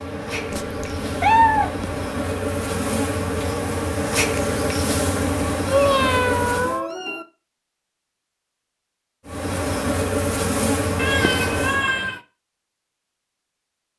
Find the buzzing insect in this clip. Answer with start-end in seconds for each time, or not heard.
0.0-6.8, 9.2-11.8.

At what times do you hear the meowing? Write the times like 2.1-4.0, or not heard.
0.5-2.0, 5.7-7.2, 10.9-12.2.